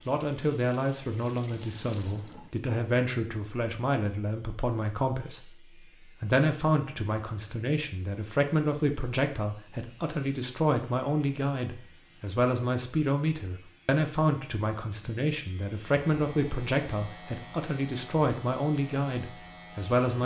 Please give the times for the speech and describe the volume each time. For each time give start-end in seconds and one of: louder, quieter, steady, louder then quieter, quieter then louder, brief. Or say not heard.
0.1-20.2 steady.